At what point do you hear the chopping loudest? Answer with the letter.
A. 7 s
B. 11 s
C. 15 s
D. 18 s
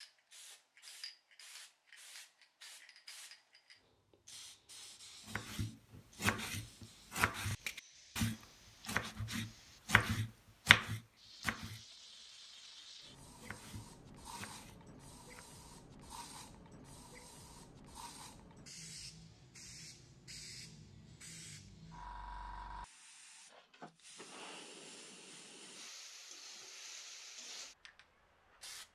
B.